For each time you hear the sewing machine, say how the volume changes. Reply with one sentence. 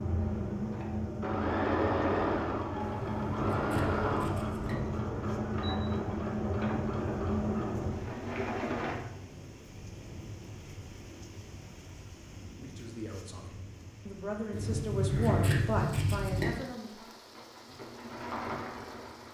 The sewing machine can be heard from 0.0 to 8.9 s, at a steady volume; and briefly from 16.8 to 19.2 s.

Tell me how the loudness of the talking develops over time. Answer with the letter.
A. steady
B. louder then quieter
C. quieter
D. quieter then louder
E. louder
B.